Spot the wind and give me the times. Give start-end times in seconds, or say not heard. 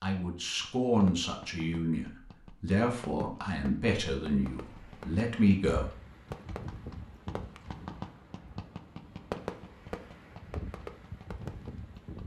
4.4-12.2.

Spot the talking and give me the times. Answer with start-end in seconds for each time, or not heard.
0.0-5.8.